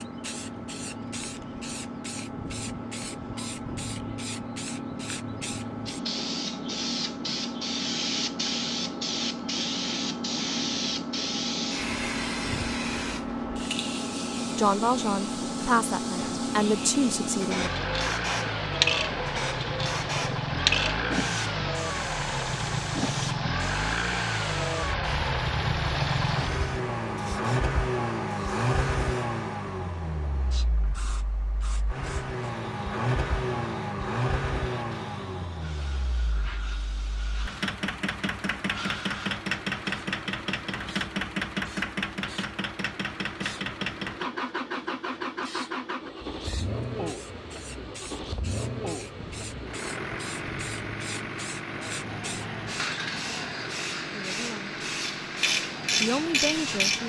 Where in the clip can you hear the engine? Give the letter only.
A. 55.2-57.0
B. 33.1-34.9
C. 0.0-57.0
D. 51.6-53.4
C.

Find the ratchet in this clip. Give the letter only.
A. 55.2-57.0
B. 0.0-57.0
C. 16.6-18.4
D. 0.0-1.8
A.